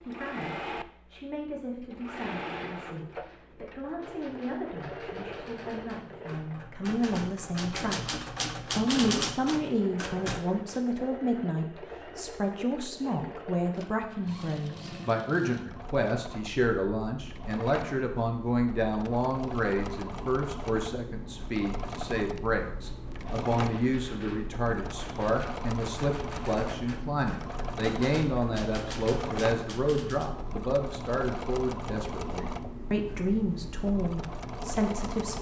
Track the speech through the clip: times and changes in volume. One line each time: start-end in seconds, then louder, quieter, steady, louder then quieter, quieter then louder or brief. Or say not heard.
0.0-35.3 louder.